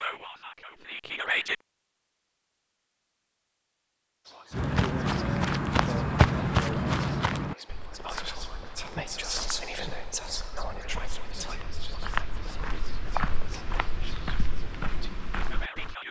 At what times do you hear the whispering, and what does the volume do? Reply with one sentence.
The whispering can be heard briefly from 0.0 to 1.6 s; and from 4.2 to 16.0 s, getting louder then quieter.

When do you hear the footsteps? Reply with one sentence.
The footsteps can be heard from 4.5 to 15.9 s.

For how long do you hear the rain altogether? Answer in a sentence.
You can't hear the rain here.